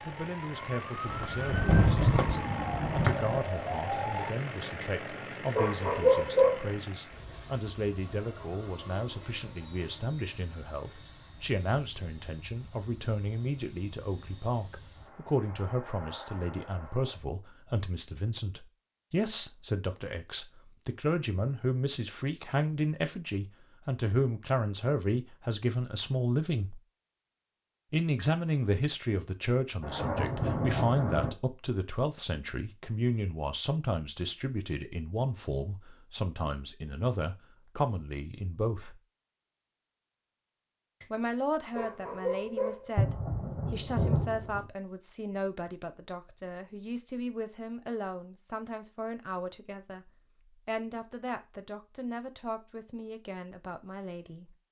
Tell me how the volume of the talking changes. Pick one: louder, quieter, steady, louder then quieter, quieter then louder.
louder then quieter.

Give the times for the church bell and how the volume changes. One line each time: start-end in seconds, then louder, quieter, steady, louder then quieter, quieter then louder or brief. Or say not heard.
not heard.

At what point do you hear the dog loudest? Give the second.
6 s.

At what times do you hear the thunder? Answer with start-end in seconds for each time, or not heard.
1.1-3.4, 29.8-31.3, 43.0-44.6.